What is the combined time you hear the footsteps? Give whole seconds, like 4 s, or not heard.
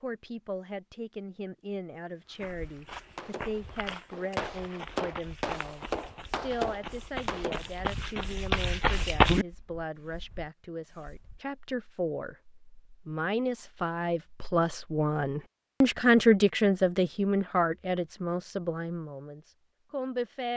7 s.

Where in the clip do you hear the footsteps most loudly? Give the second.
9 s.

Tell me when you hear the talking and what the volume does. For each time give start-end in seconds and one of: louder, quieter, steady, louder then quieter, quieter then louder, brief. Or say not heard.
0.0-20.5 louder.